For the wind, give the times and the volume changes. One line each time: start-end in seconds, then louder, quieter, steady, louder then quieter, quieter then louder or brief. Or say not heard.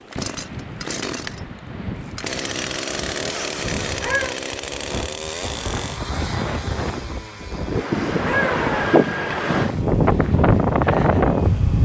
0.0-11.8 louder.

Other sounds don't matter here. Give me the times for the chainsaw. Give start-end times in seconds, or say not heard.
0.1-11.8.